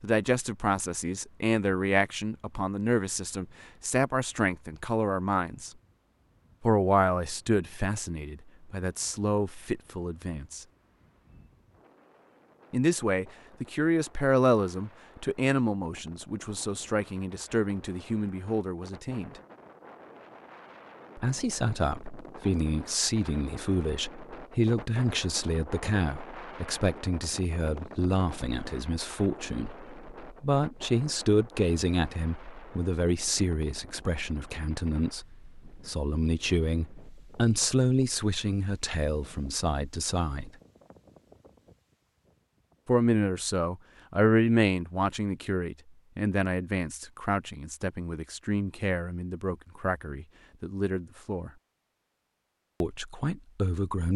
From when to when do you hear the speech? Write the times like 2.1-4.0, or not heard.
0.0-5.7, 6.6-10.7, 12.7-19.4, 21.1-40.5, 42.9-51.5, 52.8-54.1.